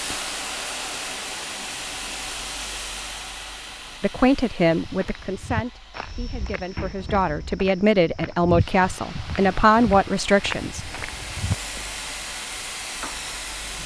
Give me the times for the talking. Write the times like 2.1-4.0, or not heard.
4.0-10.9.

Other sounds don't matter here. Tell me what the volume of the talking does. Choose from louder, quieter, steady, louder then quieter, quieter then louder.
quieter then louder.